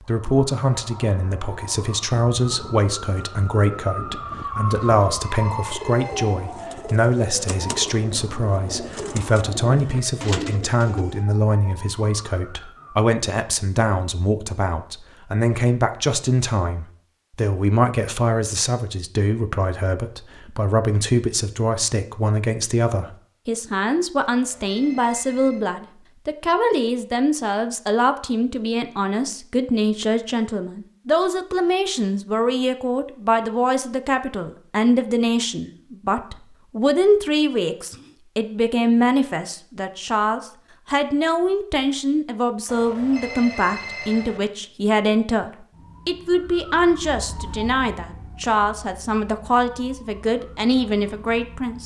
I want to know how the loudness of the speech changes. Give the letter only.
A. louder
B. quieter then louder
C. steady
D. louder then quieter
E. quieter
C.